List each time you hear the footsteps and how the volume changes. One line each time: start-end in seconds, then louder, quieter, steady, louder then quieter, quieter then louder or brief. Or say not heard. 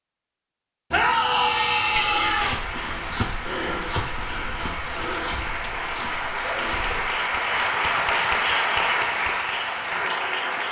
1.9-7.1 quieter.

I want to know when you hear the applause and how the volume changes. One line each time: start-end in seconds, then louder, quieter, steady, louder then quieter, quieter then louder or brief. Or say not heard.
2.5-10.6 louder.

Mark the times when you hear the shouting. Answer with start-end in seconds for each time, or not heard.
0.9-2.5.